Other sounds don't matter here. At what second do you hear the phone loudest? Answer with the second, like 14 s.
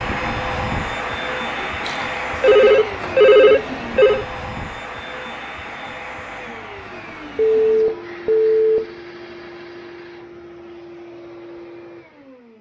3 s.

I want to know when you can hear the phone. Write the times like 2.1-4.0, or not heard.
1.9-4.2, 7.3-8.8.